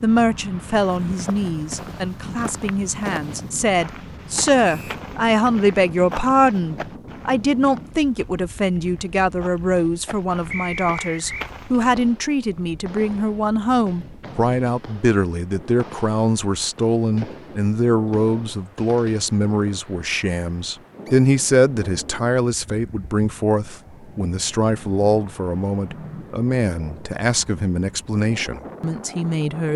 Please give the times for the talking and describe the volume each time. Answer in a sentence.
You can hear the talking from 0.0 to 29.7 s, at a steady volume.